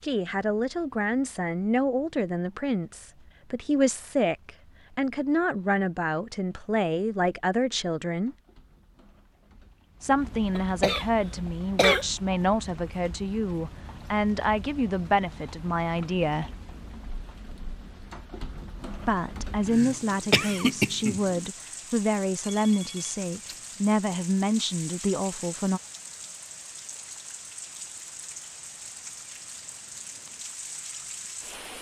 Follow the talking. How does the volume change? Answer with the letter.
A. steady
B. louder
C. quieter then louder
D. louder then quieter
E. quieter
A.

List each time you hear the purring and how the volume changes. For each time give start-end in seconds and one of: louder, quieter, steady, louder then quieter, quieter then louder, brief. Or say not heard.
not heard.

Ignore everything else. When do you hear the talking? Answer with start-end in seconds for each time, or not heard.
0.0-8.3, 10.0-16.5, 19.1-25.8.